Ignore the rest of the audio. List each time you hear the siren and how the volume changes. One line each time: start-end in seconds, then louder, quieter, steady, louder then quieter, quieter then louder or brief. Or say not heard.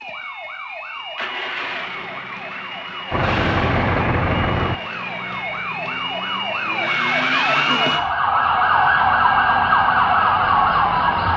0.0-11.3 louder.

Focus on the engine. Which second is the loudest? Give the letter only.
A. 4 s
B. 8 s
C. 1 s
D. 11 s
A.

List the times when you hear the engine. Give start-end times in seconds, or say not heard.
3.1-4.8, 9.0-11.3.